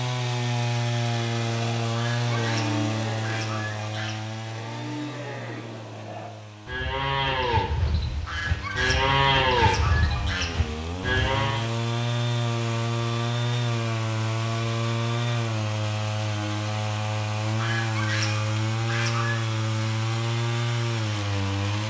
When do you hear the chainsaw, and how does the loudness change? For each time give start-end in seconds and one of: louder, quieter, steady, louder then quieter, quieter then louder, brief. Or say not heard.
0.0-21.8 quieter then louder.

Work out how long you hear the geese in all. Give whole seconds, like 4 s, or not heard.
7 s.